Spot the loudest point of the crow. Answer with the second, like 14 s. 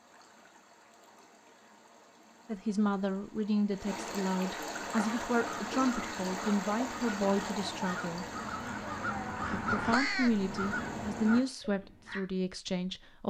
10 s.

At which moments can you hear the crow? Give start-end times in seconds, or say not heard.
4.8-12.2.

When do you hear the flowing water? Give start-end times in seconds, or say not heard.
0.0-11.6.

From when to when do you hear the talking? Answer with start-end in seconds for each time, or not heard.
2.5-8.2, 9.5-13.2.